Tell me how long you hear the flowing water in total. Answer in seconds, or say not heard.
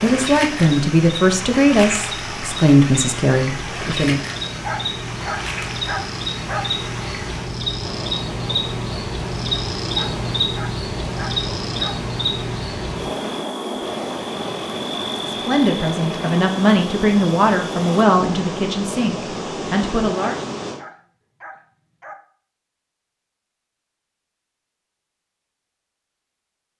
21 s.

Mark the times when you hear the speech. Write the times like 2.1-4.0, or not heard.
0.0-4.2, 15.3-20.4.